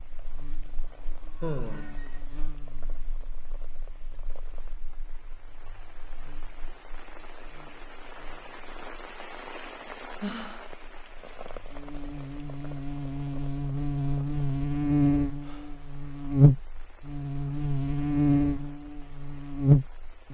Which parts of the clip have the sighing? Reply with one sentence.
You can hear the sighing from 0.9 to 2.2 s, from 10.2 to 10.8 s and from 15.3 to 15.9 s.